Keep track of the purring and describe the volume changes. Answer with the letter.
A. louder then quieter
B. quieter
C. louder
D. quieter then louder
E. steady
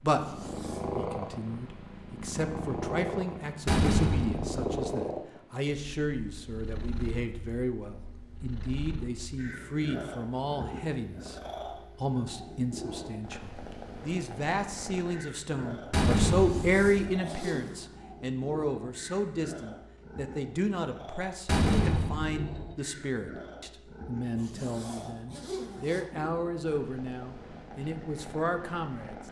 B.